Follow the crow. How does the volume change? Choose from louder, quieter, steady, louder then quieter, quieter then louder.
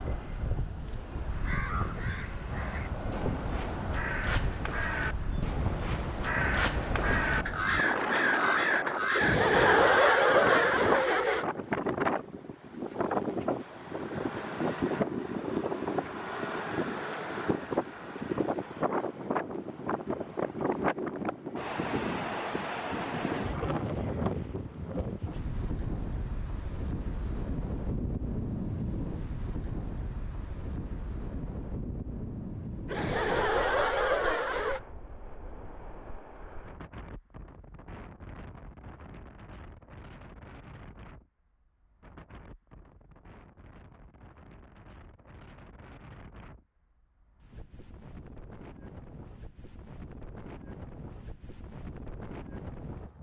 louder.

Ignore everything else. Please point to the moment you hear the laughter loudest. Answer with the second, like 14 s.
10 s.